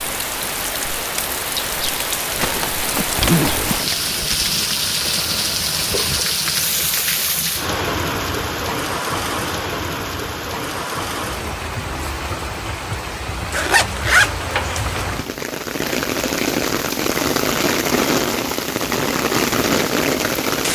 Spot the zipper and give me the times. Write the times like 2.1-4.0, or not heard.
2.4-4.5, 13.5-14.8.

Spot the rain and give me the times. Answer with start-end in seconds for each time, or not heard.
0.0-20.6.